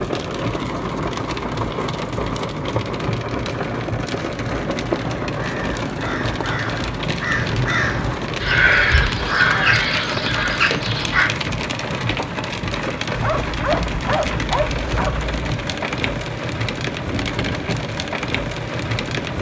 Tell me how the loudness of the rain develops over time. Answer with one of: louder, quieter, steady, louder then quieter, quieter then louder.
steady.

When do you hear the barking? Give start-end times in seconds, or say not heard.
13.1-15.3.